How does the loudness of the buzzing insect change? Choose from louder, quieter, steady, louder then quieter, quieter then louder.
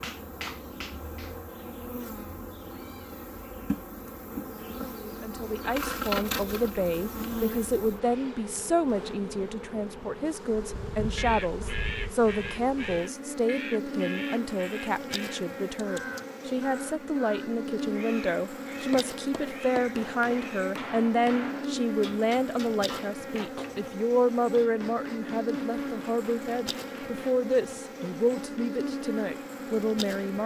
steady.